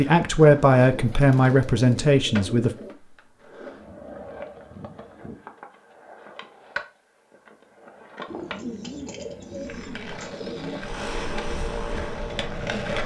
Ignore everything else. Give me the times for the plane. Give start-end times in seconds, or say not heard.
10.8-12.8.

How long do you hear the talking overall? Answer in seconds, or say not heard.
3 s.